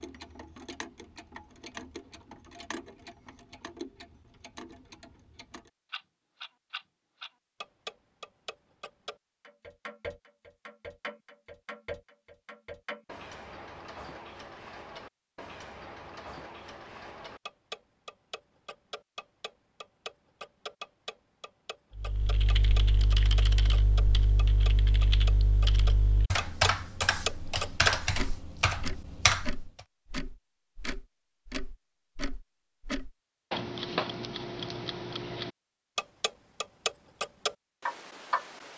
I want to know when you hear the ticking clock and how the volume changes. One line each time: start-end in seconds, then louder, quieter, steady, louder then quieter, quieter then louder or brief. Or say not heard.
0.0-38.7 louder.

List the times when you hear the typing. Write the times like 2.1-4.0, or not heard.
21.9-29.8.